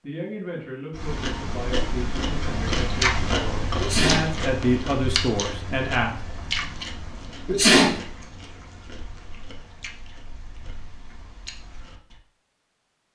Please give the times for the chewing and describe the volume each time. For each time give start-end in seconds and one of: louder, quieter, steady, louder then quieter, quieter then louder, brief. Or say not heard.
0.9-12.2 quieter.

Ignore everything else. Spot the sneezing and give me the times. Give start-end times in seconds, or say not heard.
3.8-4.3, 7.5-8.0.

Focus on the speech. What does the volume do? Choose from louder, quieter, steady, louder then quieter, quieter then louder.
louder.